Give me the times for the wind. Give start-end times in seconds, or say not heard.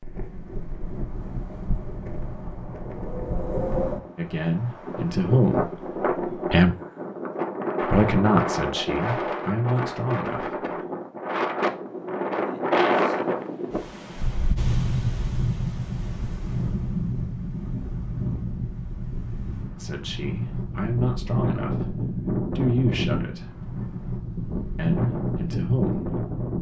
0.0-26.5.